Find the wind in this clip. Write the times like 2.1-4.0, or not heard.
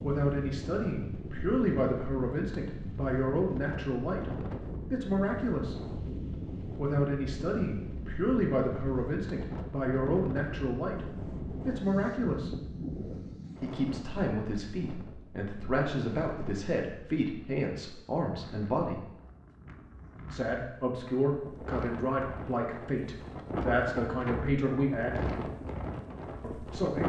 0.0-27.0.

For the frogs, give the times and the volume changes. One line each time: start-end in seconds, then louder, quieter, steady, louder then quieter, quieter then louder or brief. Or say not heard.
not heard.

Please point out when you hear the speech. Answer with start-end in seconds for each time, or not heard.
0.0-5.8, 6.8-12.6, 13.6-19.1, 20.3-25.3, 26.4-27.0.